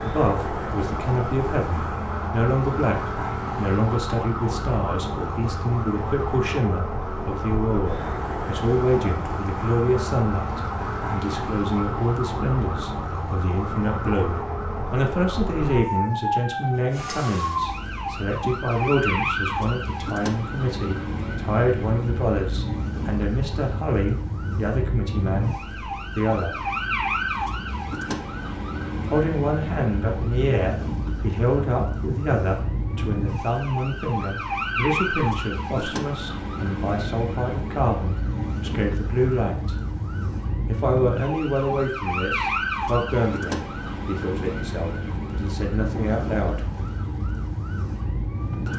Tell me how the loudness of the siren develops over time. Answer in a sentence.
The loudness of the siren stays about the same.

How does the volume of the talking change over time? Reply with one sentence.
The loudness of the talking stays about the same.